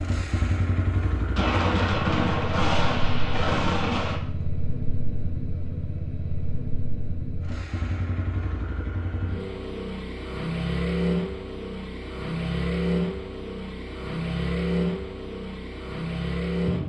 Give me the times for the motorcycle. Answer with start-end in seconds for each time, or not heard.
0.0-16.8.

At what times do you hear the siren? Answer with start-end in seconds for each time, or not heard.
not heard.